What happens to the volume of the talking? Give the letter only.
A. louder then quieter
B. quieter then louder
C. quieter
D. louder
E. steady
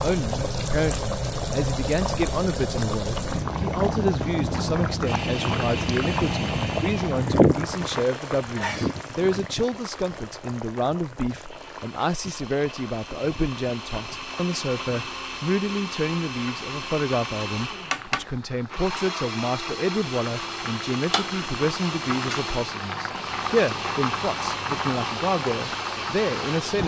E.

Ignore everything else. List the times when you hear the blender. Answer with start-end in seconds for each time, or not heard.
5.0-26.8.